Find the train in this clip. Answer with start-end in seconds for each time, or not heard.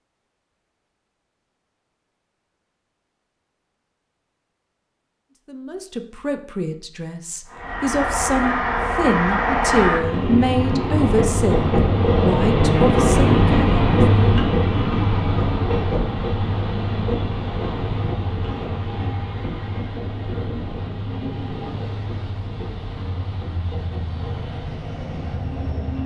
7.5-26.0.